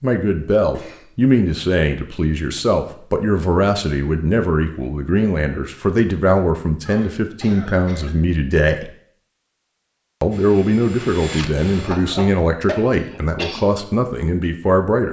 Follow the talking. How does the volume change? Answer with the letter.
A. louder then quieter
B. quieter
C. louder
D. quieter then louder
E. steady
E.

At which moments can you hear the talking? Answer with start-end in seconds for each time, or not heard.
0.0-8.9, 10.2-15.0.